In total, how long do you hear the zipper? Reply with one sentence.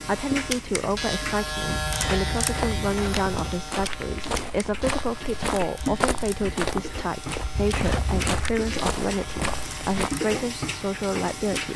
The zipper can be heard for 3 seconds in total.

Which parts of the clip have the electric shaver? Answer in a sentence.
You can hear the electric shaver from 0.0 to 11.7 s.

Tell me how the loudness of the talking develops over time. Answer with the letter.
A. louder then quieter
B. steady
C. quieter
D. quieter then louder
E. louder
B.